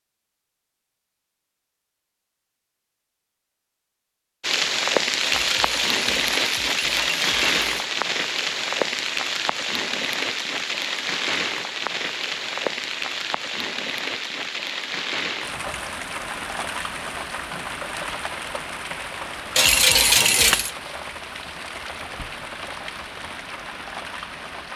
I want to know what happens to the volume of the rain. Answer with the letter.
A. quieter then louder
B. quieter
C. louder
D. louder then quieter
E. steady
B.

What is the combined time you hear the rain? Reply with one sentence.
The rain can be heard for 20 seconds in total.